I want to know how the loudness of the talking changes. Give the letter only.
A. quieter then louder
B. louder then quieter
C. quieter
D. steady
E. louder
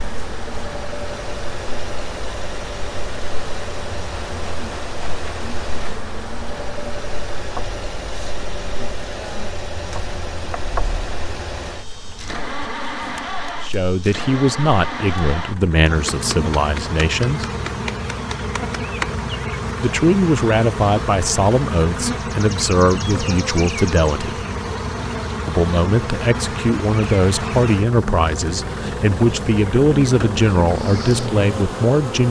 D.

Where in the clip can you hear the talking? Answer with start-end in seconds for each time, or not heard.
13.6-17.4, 19.8-24.4, 25.4-32.2.